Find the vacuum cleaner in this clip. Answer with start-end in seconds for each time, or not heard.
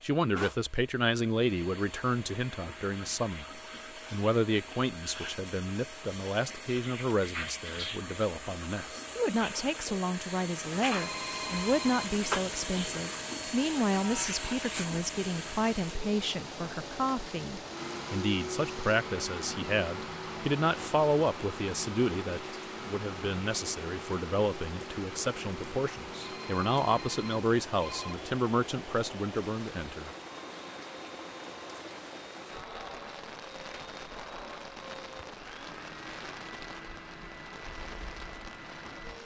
0.0-39.2.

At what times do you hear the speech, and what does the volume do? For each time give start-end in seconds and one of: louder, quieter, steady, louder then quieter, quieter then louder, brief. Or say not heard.
0.0-30.1 steady.